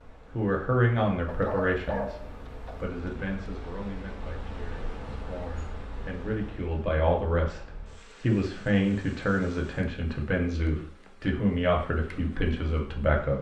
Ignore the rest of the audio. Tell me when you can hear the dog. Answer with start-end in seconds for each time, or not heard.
1.2-2.9.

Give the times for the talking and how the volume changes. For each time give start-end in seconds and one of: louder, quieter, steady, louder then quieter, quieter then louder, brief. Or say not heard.
0.3-13.3 quieter then louder.